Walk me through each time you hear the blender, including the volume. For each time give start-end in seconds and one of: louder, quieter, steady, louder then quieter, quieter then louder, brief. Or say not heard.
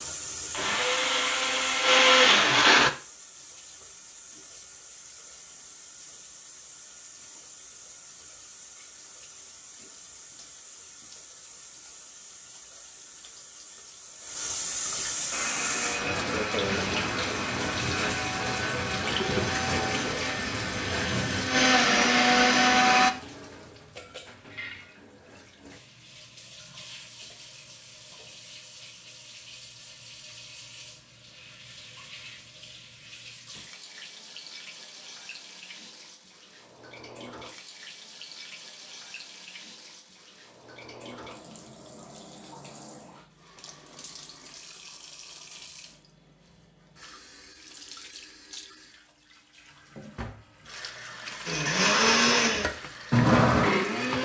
0.0-2.9 brief
15.3-23.1 louder
51.5-54.1 brief.